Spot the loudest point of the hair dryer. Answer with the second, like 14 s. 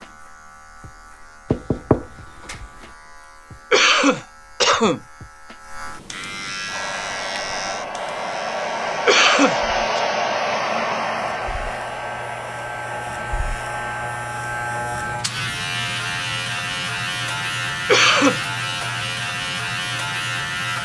10 s.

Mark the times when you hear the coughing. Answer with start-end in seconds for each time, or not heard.
3.7-5.0, 9.1-10.0, 17.9-18.4.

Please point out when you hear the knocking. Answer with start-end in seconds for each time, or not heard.
1.5-2.6.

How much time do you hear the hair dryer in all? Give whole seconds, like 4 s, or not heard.
8 s.